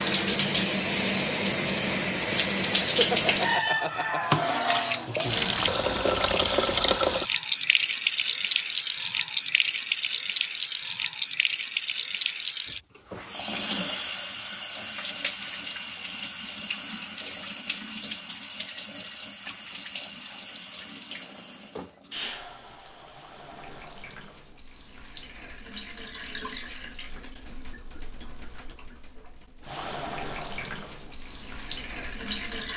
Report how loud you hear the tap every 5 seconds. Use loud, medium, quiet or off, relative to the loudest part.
loud, loud, medium, medium, quiet, quiet, medium.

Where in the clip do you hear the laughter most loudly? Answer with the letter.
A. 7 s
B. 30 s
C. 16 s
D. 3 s
D.